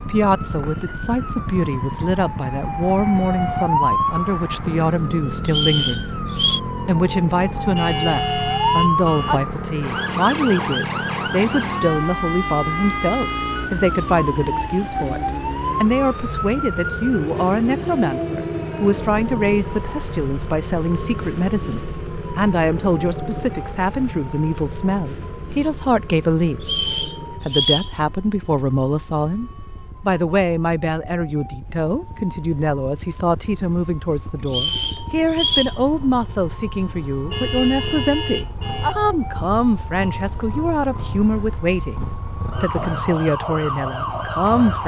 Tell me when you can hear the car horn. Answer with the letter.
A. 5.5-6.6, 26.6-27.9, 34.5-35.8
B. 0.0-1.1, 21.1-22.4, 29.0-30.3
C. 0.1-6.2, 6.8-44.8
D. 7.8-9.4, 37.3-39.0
D.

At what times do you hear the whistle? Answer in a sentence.
You can hear the whistle from 5.5 to 6.6 s, from 26.6 to 27.9 s and from 34.5 to 35.8 s.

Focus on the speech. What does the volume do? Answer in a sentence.
The volume of the speech stays about the same.